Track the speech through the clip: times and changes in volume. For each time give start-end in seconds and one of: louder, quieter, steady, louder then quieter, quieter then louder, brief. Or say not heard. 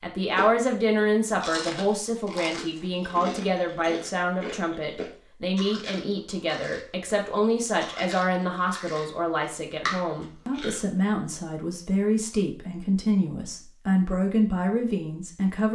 0.0-15.7 steady.